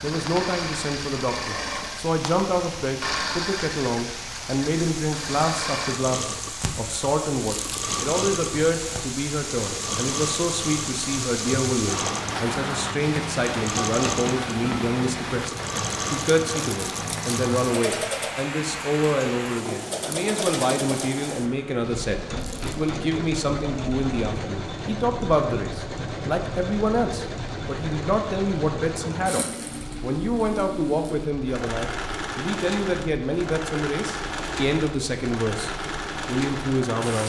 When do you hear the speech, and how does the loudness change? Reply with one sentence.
You can hear the speech from 0.0 to 37.2 s, at a steady volume.